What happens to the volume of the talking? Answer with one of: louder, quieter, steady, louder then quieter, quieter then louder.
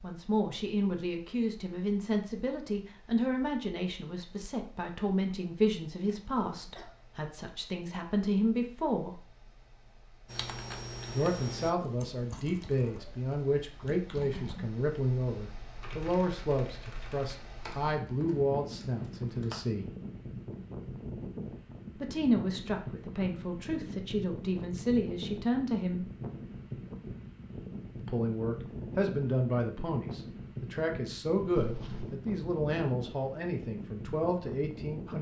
steady.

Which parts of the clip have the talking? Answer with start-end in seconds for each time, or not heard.
0.0-9.2, 11.1-19.9, 21.9-26.1, 27.9-35.1.